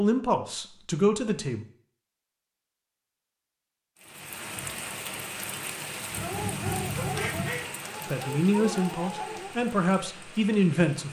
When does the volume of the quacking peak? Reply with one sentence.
The loudest moment of the quacking is at 7 seconds.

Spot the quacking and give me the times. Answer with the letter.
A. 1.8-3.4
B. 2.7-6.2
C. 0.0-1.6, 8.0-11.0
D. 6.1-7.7
D.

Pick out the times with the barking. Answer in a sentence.
The barking can be heard from 6.1 to 9.6 s.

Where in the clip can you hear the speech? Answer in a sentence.
The speech can be heard from 0.0 to 1.6 s and from 8.0 to 11.0 s.